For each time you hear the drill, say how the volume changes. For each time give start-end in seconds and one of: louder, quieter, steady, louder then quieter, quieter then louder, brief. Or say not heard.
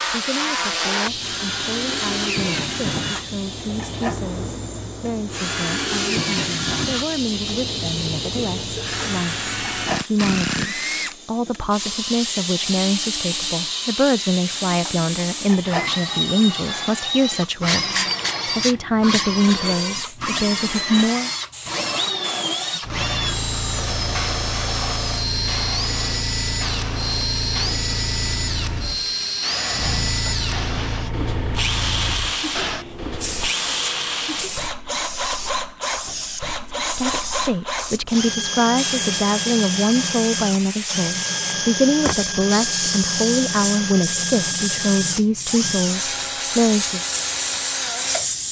0.0-48.3 steady.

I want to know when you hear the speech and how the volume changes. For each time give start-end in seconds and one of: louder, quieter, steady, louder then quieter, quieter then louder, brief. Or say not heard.
0.1-21.3 louder
36.8-47.0 steady.